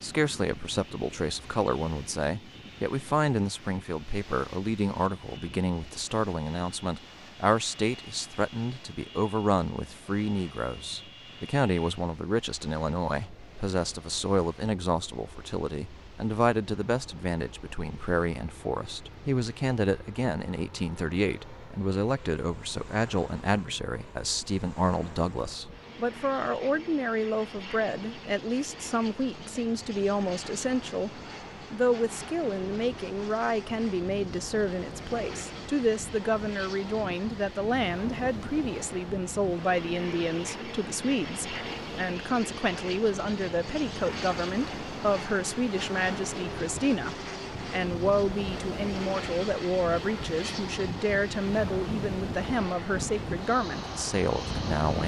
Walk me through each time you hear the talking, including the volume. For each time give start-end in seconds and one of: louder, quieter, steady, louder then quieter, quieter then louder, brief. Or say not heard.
0.0-55.0 steady.